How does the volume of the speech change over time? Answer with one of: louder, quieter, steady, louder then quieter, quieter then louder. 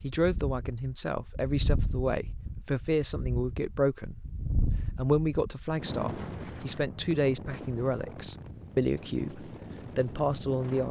steady.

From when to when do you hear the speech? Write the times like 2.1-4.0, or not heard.
0.0-4.2, 5.0-10.8.